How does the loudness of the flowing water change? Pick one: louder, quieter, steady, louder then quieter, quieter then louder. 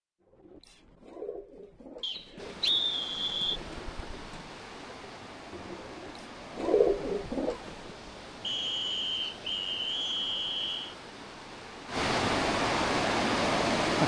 louder.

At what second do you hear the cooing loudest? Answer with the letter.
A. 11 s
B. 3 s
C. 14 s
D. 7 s
D.